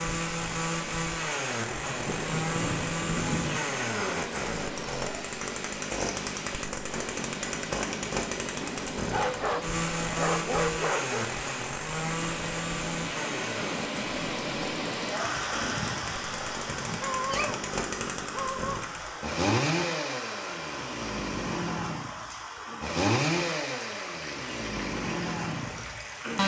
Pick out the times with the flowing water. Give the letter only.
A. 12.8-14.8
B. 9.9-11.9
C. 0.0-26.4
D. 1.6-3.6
C.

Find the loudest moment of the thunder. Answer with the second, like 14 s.
3 s.